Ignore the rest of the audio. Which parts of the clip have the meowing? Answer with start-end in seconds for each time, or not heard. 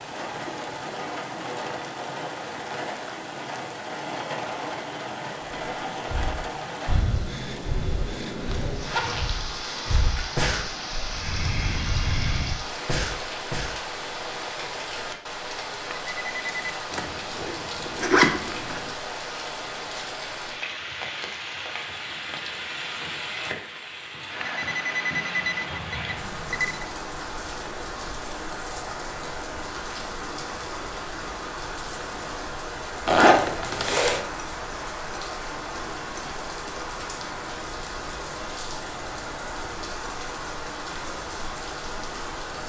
not heard.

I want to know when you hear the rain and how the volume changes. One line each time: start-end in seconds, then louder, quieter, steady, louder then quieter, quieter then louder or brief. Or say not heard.
0.0-42.6 steady.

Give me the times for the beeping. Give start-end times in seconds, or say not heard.
15.8-16.8, 24.4-26.9.